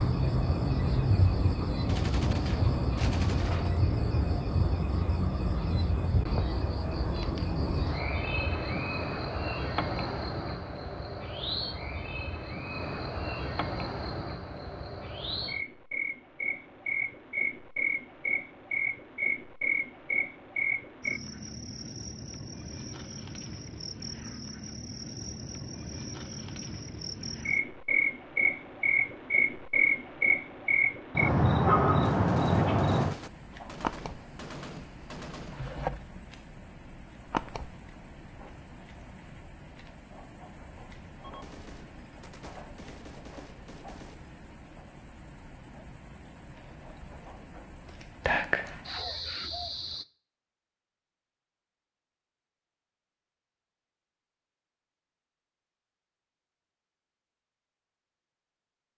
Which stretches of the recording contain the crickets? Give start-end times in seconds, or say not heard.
0.0-50.0.